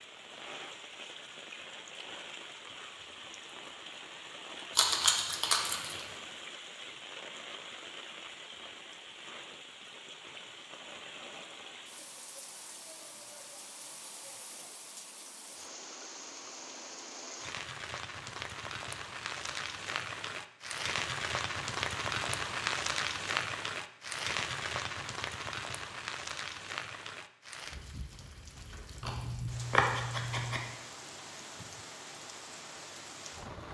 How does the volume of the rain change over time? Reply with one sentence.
The volume of the rain goes up, then down.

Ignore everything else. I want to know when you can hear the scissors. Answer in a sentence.
You can hear the scissors from 4.8 to 6.0 s and from 29.0 to 30.6 s.